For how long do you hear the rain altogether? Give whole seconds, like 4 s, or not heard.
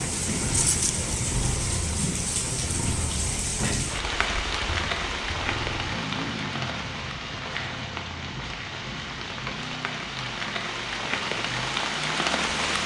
13 s.